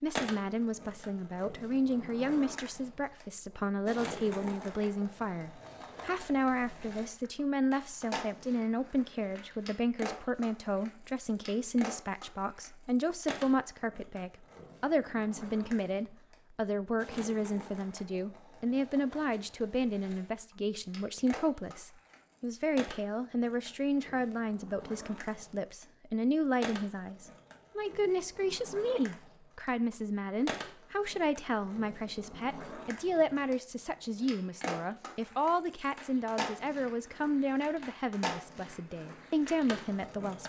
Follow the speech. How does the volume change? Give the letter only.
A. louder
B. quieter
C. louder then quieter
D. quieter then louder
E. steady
E.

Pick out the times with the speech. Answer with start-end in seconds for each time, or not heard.
0.0-40.4.